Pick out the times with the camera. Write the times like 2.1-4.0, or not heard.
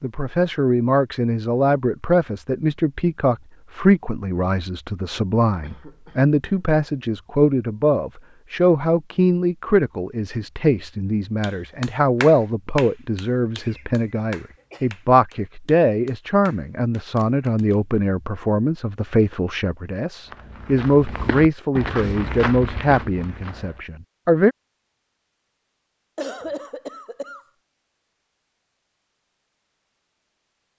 not heard.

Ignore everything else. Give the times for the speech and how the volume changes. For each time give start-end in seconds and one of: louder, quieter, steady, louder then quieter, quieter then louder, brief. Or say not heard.
0.0-24.6 steady.